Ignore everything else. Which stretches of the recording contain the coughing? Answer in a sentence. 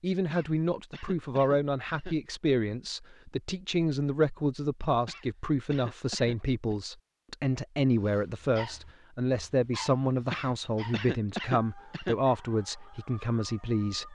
The coughing can be heard from 0.2 to 2.1 s, from 5.0 to 6.8 s and from 10.3 to 12.2 s.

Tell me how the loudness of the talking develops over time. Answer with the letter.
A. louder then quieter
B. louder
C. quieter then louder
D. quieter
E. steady
E.